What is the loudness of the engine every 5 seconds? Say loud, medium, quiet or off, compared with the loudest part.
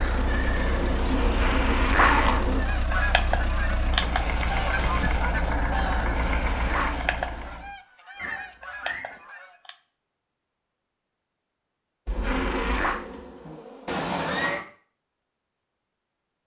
loud, loud, off, off.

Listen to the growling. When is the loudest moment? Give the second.
2 s.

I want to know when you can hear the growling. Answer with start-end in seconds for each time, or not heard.
1.2-2.5, 6.1-7.0, 12.1-13.0.